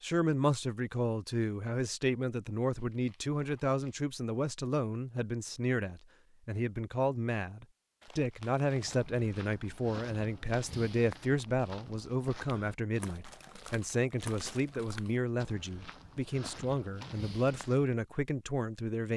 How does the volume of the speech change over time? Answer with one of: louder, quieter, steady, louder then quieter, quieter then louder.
steady.